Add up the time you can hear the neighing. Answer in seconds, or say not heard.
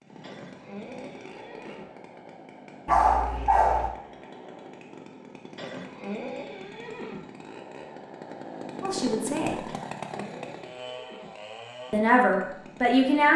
5 s.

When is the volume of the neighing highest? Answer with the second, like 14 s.
6 s.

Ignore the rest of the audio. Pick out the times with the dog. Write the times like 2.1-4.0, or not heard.
2.9-3.9.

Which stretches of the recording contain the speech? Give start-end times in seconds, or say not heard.
8.8-9.6, 11.9-13.3.